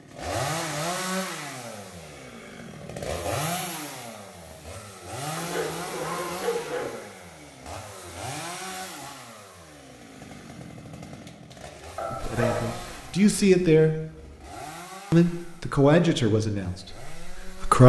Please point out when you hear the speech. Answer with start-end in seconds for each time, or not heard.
12.1-13.9, 15.1-17.8.